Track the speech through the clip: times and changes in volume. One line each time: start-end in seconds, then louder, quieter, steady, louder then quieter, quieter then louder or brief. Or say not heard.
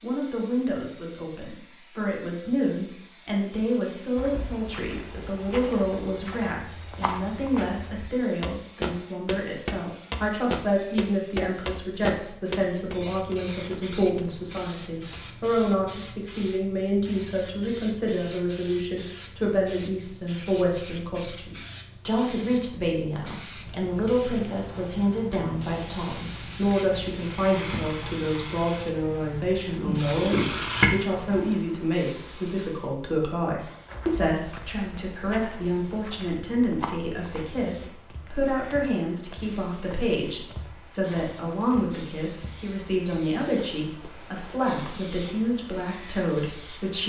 0.0-47.0 steady.